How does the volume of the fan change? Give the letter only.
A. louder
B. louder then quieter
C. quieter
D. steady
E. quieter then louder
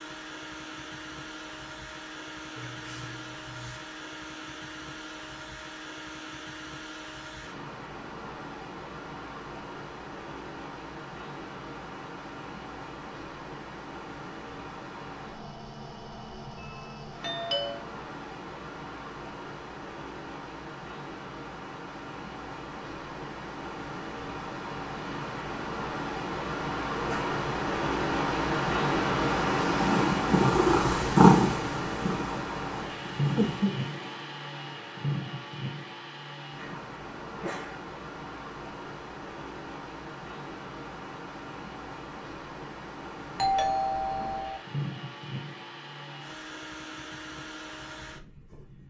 B.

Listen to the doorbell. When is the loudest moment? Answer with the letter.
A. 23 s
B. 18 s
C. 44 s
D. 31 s
C.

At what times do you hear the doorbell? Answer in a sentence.
You can hear the doorbell from 16.6 to 17.9 s and from 43.4 to 44.6 s.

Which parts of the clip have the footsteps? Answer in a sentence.
The footsteps can't be heard in this clip.